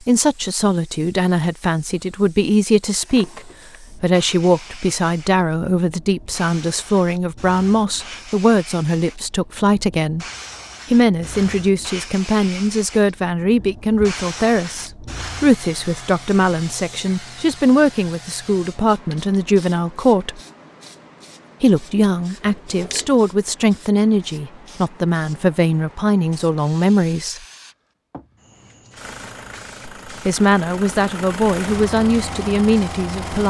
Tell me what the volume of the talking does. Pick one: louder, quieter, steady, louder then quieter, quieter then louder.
steady.